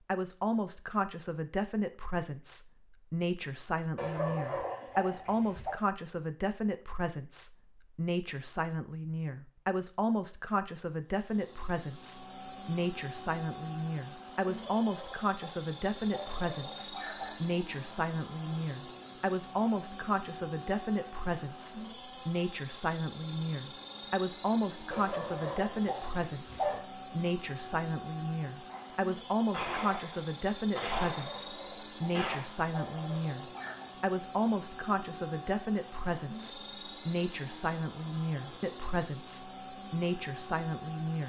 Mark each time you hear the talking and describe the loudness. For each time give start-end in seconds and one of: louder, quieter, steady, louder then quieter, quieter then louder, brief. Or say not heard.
0.1-41.2 steady.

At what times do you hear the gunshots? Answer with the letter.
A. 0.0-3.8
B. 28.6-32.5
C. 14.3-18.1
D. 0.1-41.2
B.